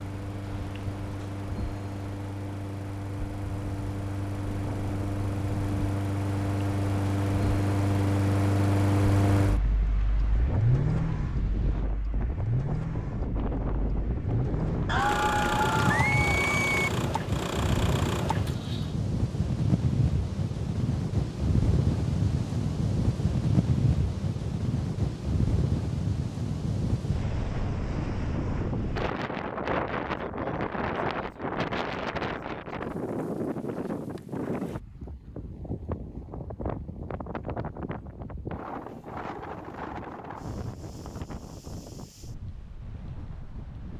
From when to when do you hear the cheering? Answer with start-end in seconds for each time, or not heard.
14.8-16.9.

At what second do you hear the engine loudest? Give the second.
9 s.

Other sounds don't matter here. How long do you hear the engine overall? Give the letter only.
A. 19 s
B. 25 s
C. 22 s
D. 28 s
A.